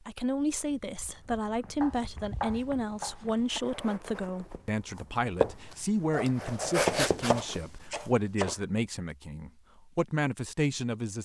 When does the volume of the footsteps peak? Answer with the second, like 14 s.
7 s.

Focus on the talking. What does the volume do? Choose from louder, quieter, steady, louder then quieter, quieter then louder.
steady.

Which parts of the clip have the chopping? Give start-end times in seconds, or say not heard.
1.8-3.6, 6.8-8.6.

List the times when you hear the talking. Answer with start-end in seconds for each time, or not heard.
0.1-11.2.